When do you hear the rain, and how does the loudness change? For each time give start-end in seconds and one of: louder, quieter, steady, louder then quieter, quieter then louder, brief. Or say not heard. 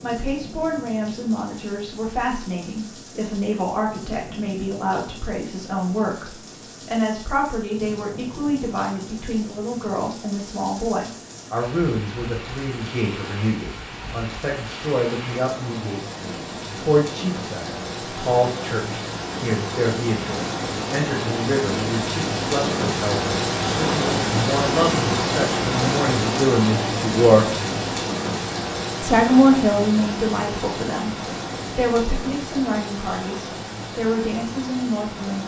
0.0-35.4 louder then quieter.